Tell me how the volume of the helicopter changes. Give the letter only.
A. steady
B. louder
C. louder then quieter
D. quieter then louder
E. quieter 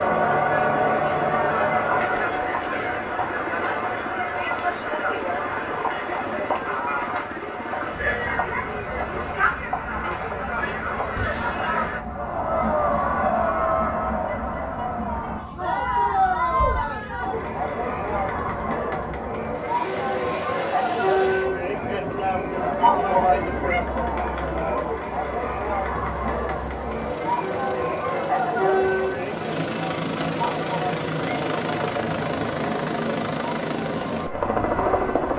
B.